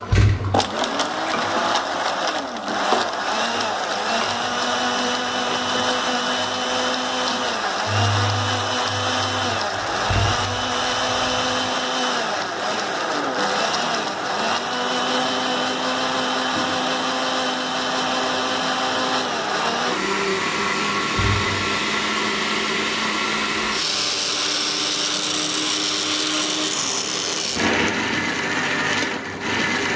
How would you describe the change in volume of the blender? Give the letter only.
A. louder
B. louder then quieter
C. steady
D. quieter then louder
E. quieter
C.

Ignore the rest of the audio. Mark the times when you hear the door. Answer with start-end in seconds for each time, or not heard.
0.1-0.7, 10.1-10.6, 21.1-21.6.